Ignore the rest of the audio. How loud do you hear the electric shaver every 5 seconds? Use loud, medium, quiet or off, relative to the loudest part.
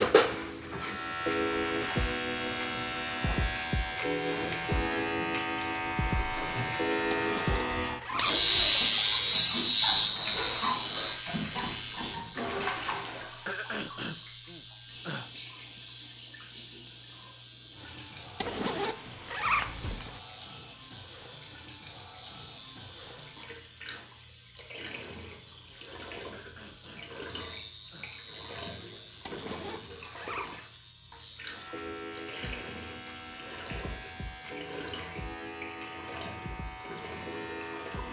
medium, loud, medium, quiet, quiet, quiet, quiet, quiet.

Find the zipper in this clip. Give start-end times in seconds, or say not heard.
7.1-8.7, 18.4-20.2, 29.2-30.6.